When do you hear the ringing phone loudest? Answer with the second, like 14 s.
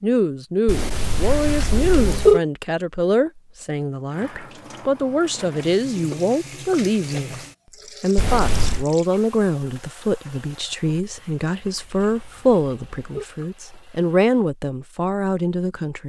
2 s.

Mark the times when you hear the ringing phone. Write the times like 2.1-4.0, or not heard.
0.7-2.4, 8.2-8.8, 11.6-13.2.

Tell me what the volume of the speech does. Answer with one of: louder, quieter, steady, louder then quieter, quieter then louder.
steady.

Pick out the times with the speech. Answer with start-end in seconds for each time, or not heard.
0.0-7.4, 8.0-16.0.